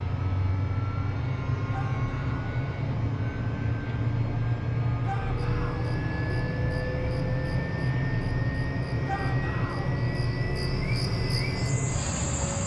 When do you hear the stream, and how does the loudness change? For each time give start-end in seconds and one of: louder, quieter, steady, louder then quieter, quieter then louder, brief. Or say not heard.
not heard.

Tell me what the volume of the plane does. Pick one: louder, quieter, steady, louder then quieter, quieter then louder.
steady.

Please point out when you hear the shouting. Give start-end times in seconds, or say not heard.
1.7-2.4, 5.0-5.9, 9.1-9.9.